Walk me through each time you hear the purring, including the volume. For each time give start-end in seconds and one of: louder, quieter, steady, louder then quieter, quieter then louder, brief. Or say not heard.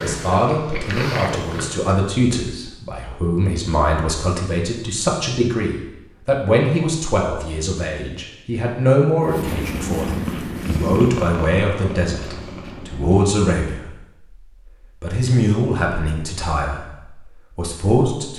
0.0-1.9 brief
9.2-13.3 quieter.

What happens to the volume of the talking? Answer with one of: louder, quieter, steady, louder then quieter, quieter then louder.
steady.